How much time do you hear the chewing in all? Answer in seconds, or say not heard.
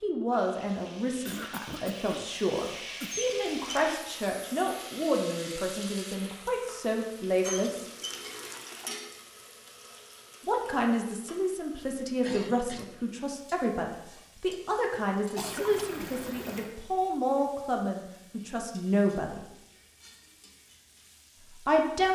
not heard.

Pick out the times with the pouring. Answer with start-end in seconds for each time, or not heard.
3.1-3.9, 7.4-8.9, 15.3-16.7.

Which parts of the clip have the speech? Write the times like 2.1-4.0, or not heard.
0.0-7.8, 10.4-19.4, 21.5-22.1.